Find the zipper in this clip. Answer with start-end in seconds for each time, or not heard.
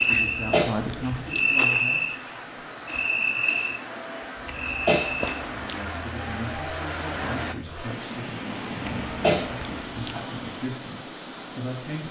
not heard.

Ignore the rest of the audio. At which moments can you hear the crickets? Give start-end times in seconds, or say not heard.
0.0-8.0.